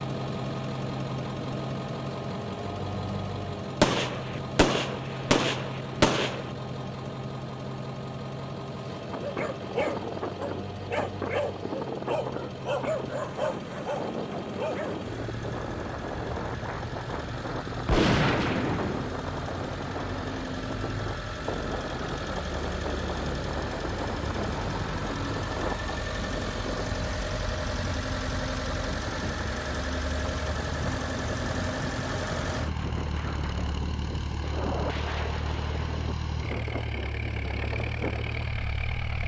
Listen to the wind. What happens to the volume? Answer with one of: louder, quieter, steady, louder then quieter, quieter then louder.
steady.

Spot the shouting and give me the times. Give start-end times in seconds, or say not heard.
not heard.